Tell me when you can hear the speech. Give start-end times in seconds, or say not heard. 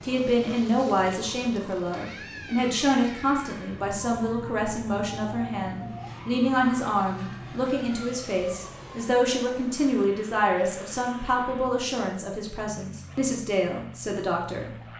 0.0-14.7.